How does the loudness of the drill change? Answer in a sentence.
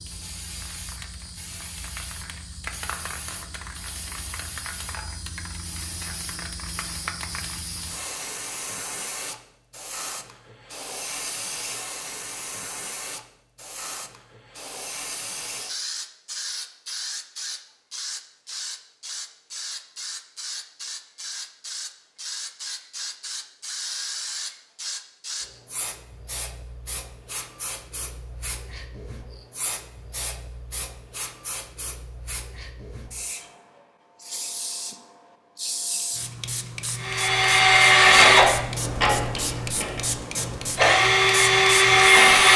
The volume of the drill goes down, then up.